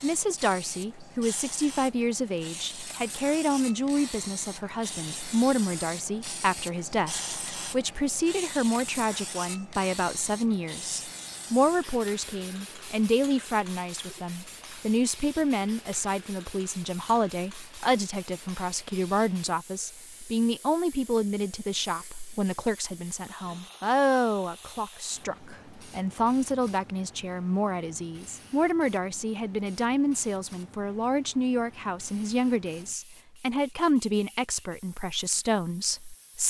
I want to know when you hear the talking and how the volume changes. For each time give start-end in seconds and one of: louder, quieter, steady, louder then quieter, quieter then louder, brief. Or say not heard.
0.0-36.4 steady.